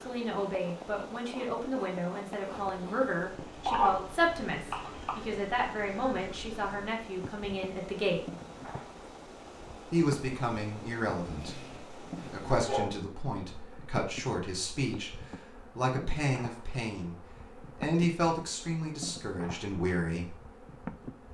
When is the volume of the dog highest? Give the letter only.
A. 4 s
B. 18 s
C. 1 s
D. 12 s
A.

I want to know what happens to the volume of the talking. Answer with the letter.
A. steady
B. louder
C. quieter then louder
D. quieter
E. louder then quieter
A.